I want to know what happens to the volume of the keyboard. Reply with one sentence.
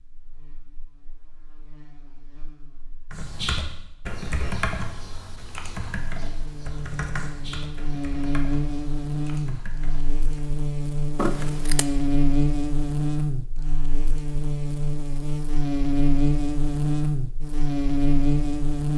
The loudness of the keyboard goes down.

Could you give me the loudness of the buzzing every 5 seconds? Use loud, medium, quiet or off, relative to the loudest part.
quiet, medium, loud, loud.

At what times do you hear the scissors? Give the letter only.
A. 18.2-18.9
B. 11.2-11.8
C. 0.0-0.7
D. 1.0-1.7
B.